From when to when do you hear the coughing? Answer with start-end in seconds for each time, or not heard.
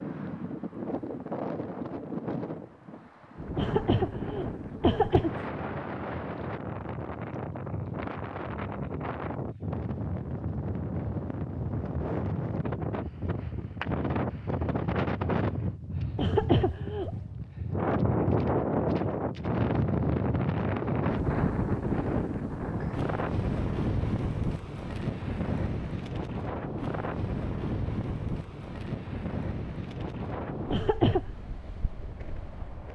3.5-5.5, 16.1-17.1, 30.7-31.2.